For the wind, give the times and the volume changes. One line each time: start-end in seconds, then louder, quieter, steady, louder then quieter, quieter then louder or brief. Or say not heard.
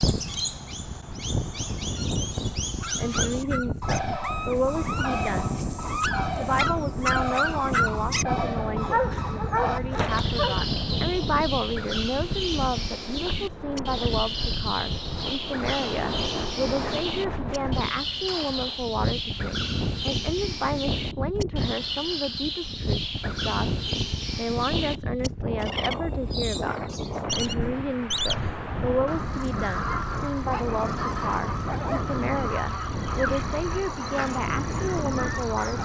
0.0-35.8 steady.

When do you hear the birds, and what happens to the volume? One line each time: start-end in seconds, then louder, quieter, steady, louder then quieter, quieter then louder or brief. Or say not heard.
0.0-35.8 steady.